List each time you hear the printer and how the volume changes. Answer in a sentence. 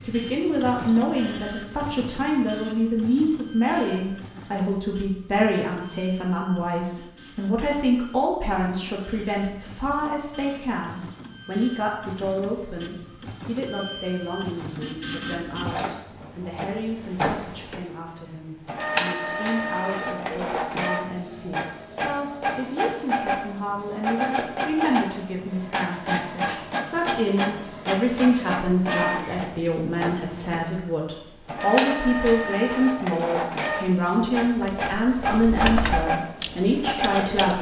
The printer can be heard from 0.0 to 37.5 s, getting louder.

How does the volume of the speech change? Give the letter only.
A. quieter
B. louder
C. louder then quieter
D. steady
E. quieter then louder
E.